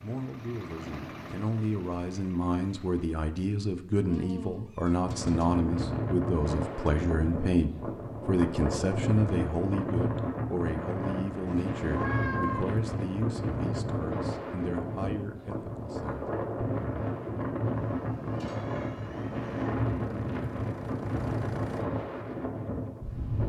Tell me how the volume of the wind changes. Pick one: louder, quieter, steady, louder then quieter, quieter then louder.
steady.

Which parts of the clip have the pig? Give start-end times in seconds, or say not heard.
not heard.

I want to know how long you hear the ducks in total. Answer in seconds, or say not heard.
not heard.